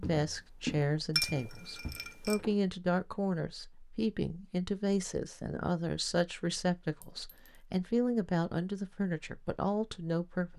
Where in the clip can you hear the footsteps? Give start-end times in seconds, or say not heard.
0.0-2.5.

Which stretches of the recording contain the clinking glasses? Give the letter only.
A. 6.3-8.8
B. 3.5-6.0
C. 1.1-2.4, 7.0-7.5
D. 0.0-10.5
C.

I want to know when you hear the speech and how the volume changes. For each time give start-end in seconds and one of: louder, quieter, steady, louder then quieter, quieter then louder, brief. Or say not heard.
0.0-10.5 steady.